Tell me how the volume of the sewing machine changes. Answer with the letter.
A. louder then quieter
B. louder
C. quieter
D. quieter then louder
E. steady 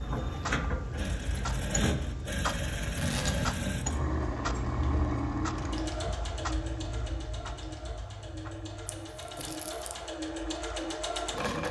D.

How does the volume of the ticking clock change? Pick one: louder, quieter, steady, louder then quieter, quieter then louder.
quieter.